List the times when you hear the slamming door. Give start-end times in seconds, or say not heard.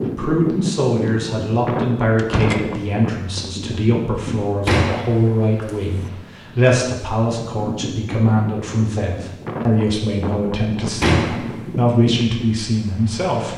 2.1-2.6, 4.7-5.9, 11.0-11.7.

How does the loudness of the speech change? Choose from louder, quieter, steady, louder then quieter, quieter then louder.
steady.